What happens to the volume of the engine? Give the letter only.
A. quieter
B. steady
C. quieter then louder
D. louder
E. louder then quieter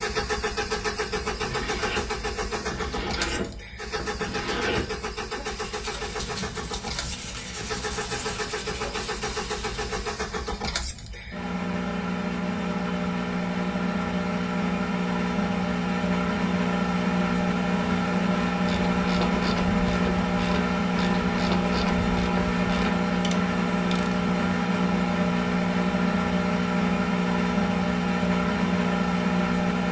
D.